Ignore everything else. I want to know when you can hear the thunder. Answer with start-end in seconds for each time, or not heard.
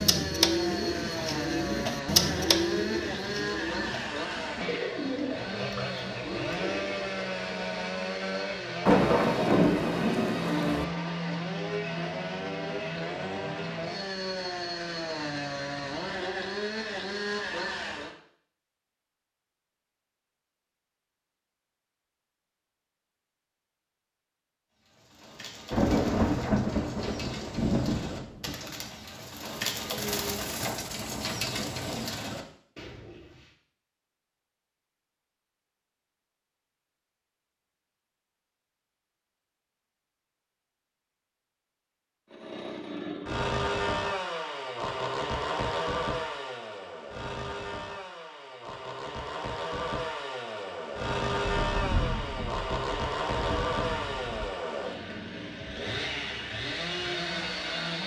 8.8-10.8, 25.7-28.6, 51.4-54.5.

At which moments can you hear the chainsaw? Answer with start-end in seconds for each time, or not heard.
0.0-18.1, 42.3-58.0.